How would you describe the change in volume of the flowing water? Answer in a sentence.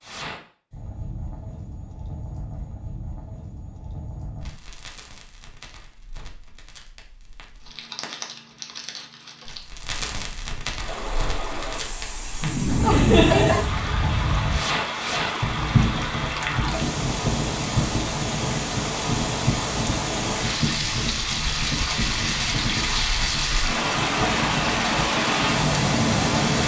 The volume of the flowing water goes up.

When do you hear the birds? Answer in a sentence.
The birds can't be heard in this clip.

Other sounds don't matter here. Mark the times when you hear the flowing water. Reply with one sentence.
The flowing water can be heard from 10.8 to 26.6 s.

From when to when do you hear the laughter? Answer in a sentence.
You can hear the laughter from 12.4 to 13.7 s.